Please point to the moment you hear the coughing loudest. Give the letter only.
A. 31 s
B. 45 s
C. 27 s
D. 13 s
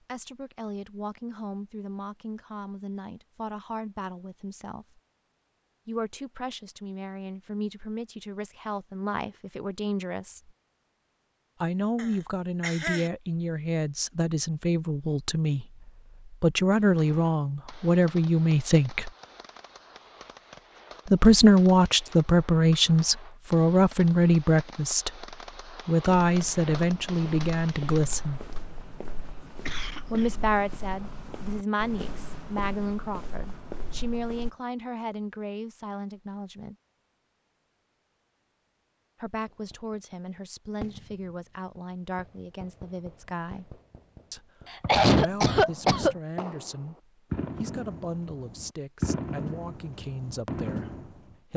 B.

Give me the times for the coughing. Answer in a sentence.
The coughing can be heard from 11.9 to 13.1 s, from 29.6 to 30.4 s and from 44.7 to 46.1 s.